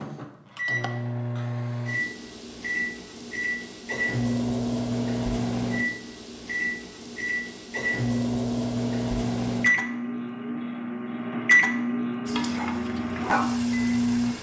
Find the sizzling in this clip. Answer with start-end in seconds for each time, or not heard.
12.2-14.3.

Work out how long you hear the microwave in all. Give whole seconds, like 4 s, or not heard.
14 s.